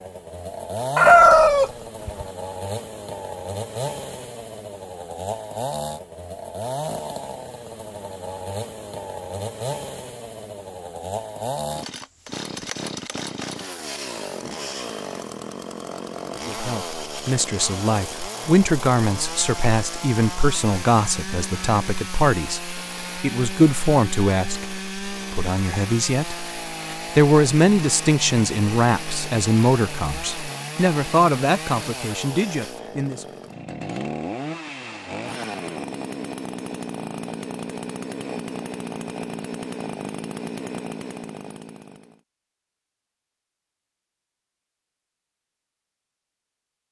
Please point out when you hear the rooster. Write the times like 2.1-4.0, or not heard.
0.9-2.2.